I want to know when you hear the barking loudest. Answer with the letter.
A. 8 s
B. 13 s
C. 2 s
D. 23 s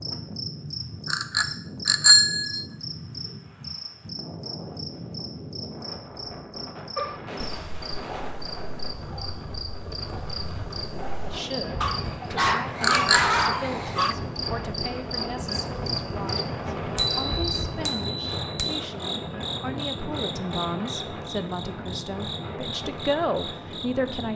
B.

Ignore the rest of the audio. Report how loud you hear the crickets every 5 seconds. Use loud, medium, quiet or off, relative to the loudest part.
loud, medium, loud, loud, loud.